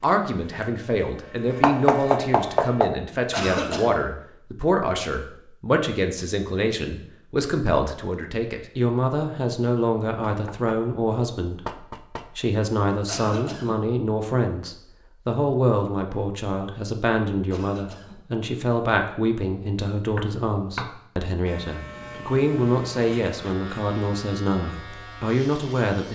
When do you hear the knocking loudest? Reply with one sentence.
The loudest moment of the knocking is at 2 seconds.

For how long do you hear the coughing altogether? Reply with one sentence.
You can hear the coughing for 2 seconds altogether.